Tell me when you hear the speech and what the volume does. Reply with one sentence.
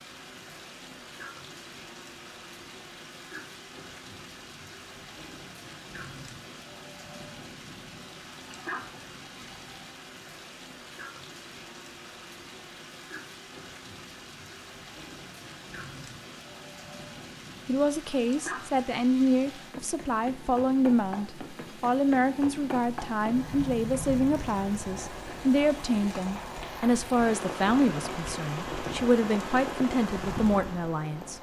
You can hear the speech from 17.6 to 31.3 s, at a steady volume.